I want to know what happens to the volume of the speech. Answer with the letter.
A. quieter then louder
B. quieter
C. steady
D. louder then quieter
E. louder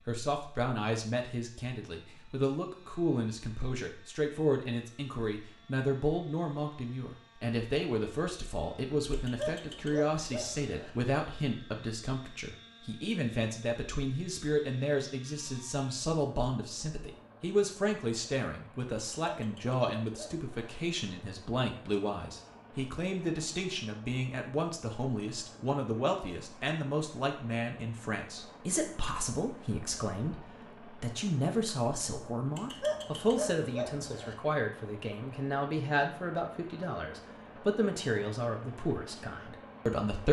C.